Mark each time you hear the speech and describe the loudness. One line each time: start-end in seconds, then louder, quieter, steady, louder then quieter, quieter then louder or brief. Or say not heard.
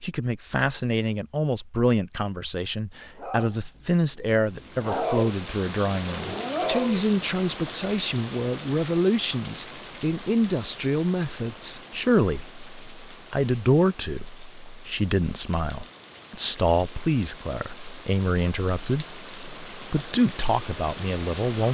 0.0-21.7 steady.